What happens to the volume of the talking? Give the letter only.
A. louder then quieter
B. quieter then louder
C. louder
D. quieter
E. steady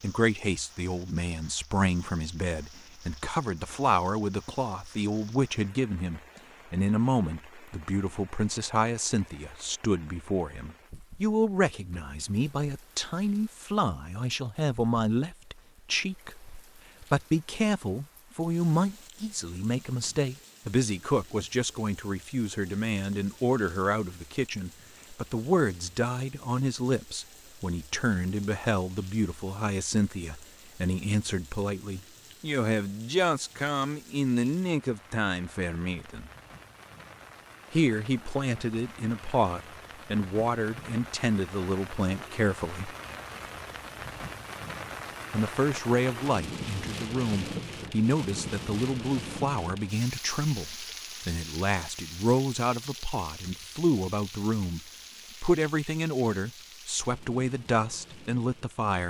E.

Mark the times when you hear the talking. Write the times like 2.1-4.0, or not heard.
0.0-36.3, 37.7-43.0, 45.3-54.8, 55.4-59.0.